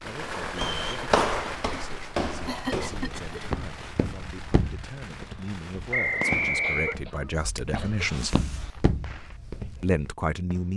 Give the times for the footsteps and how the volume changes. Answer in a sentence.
The footsteps can be heard from 0.4 to 10.2 s, getting quieter.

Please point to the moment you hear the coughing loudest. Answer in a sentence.
The loudest moment of the coughing is at 3 seconds.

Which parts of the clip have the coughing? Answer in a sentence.
The coughing can be heard from 2.5 to 3.6 s and from 6.6 to 8.1 s.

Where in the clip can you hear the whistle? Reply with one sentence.
You can hear the whistle from 0.5 to 0.9 s and from 5.9 to 7.0 s.